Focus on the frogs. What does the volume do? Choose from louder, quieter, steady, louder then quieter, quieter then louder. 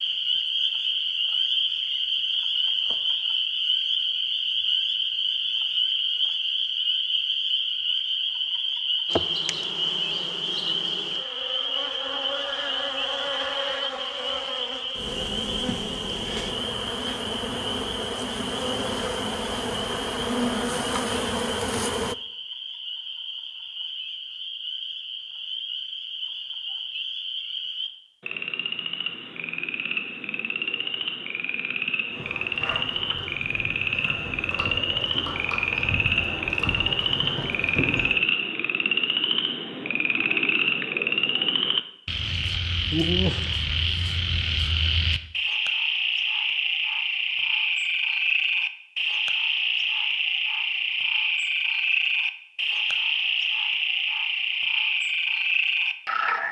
quieter then louder.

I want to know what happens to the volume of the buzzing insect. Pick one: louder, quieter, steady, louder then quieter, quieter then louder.
louder.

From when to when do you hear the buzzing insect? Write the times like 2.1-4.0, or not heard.
9.1-22.1.